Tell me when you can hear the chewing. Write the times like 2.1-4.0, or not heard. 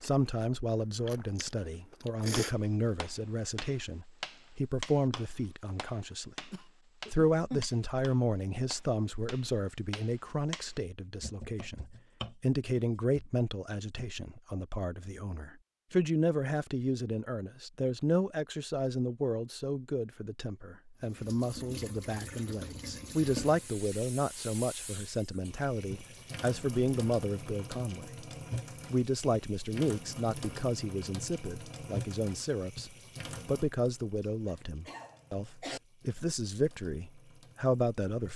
0.0-2.5.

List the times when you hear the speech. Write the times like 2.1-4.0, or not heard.
0.0-6.5, 7.1-28.2, 28.9-38.3.